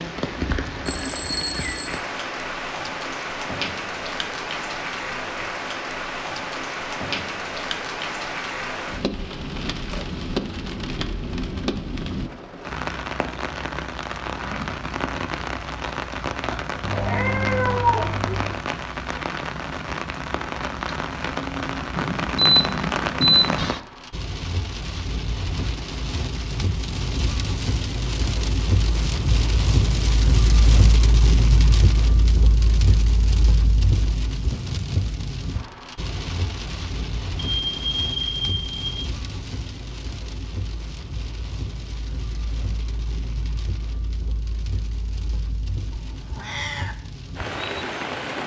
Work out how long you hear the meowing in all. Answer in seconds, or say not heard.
4 s.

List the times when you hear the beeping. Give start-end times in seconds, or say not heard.
0.8-2.0, 21.9-23.8, 37.6-39.0.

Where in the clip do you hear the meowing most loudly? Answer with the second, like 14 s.
18 s.